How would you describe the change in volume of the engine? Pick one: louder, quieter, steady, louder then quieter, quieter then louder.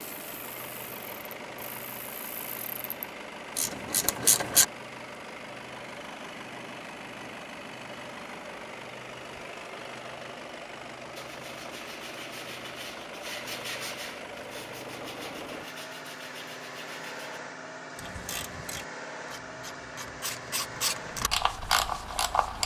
steady.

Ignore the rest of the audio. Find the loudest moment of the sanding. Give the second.
14 s.